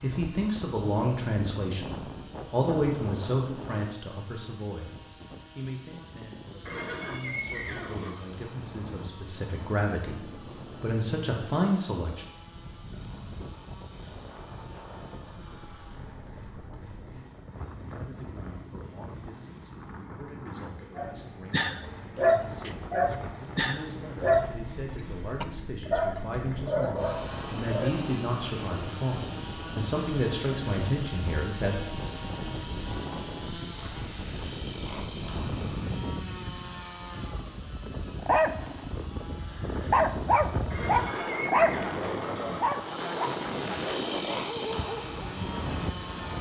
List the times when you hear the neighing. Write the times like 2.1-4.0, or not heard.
6.7-8.2, 40.7-42.7.